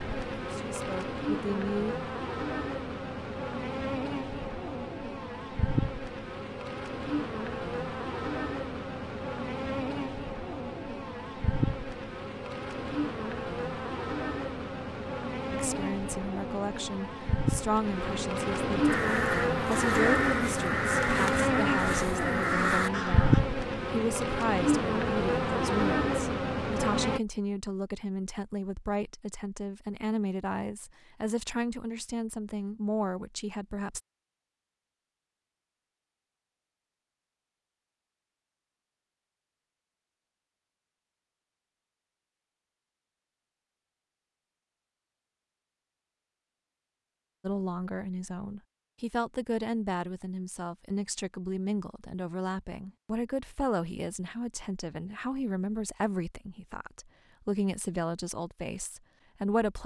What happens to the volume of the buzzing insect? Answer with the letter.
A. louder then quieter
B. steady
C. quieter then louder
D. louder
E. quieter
D.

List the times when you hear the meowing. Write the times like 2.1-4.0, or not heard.
not heard.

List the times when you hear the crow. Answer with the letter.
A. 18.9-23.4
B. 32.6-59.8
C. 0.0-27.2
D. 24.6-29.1
A.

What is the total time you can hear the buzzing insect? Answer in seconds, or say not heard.
27 s.